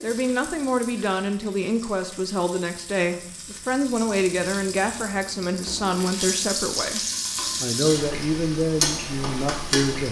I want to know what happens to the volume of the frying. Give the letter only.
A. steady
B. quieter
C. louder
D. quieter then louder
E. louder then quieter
C.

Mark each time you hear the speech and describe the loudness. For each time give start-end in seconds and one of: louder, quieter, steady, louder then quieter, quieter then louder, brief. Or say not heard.
0.0-10.0 steady.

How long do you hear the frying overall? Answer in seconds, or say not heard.
10 s.